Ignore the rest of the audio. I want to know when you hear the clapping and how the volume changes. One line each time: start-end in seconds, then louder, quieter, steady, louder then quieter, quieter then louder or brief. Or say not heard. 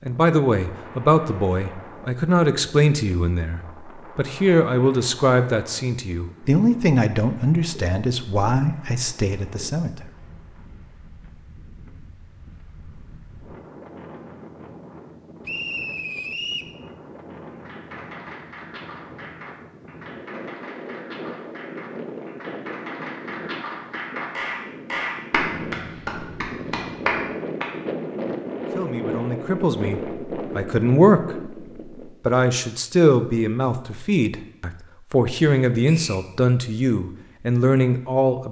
17.5-27.7 louder.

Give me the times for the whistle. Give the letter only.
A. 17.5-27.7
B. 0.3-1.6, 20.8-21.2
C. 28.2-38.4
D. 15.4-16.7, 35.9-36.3
D.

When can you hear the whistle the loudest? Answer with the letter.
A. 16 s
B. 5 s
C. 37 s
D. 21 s
A.